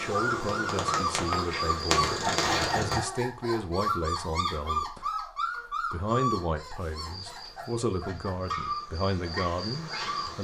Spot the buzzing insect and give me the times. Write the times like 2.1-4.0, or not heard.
0.0-3.0, 7.0-10.4.